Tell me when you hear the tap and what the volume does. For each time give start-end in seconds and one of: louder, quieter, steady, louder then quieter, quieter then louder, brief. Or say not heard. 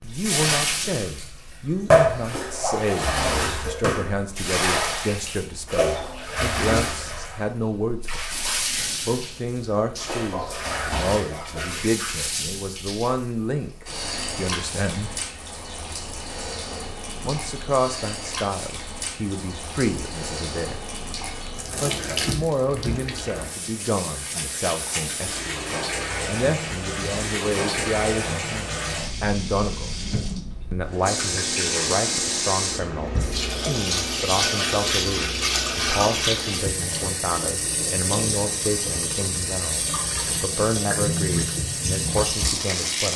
0.0-43.1 quieter then louder.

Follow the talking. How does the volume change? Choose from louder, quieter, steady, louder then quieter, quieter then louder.
steady.